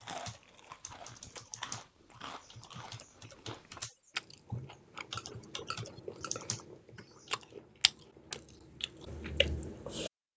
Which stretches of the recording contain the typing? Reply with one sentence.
You can hear the typing from 0.0 to 7.5 s.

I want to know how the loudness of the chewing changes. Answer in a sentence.
The volume of the chewing goes up.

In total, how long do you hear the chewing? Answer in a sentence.
You can hear the chewing for 10 seconds altogether.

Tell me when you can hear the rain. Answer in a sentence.
You can't hear the rain here.